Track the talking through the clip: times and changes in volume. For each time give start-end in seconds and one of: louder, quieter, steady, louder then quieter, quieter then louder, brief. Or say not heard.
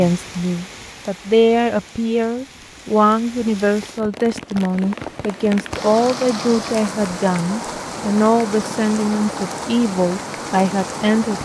0.0-11.4 steady.